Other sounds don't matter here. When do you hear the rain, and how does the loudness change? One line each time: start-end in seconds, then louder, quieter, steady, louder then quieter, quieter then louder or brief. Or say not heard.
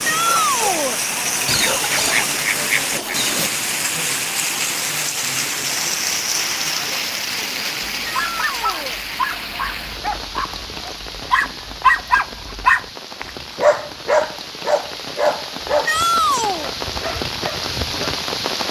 0.0-18.6 quieter then louder.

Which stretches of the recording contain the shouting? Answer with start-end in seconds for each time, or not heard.
0.0-1.0, 8.0-9.0, 15.8-16.7.